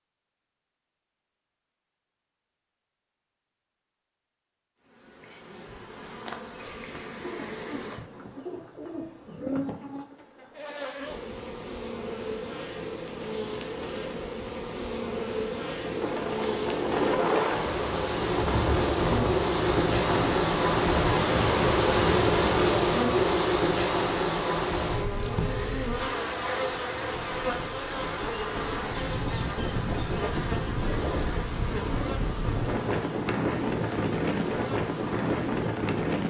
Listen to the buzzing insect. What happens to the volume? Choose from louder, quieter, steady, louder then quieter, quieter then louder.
louder then quieter.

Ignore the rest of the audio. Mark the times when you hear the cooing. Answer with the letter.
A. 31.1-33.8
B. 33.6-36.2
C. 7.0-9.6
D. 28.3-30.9
C.